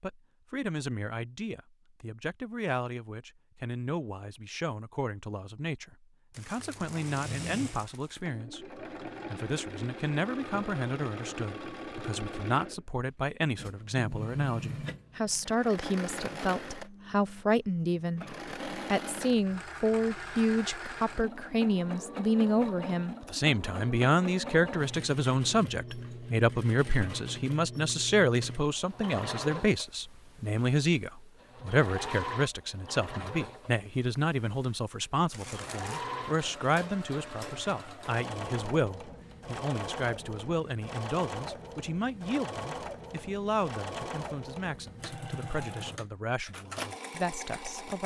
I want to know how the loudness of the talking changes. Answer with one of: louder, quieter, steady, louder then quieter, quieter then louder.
louder then quieter.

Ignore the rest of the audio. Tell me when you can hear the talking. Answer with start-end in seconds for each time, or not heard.
0.0-48.0.